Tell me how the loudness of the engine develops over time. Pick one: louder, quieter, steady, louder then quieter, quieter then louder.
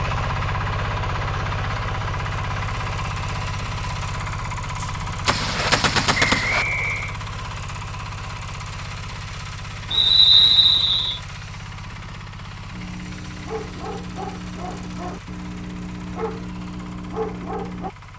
quieter.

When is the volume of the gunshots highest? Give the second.
6 s.